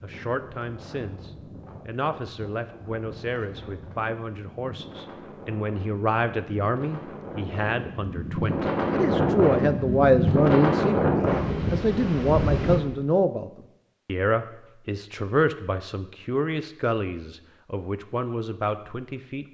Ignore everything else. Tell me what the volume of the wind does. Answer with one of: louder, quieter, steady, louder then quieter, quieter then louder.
louder.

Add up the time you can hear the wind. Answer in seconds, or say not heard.
13 s.